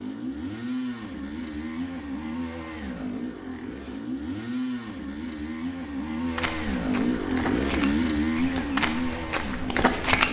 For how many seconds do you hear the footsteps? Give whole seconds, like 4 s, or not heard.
4 s.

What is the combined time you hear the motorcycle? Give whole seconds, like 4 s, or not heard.
10 s.